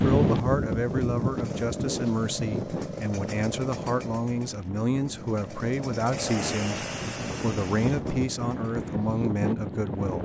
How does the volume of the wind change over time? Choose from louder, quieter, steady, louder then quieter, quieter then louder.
quieter then louder.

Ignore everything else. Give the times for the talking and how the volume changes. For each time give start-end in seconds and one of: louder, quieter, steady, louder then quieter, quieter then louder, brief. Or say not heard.
0.0-10.2 steady.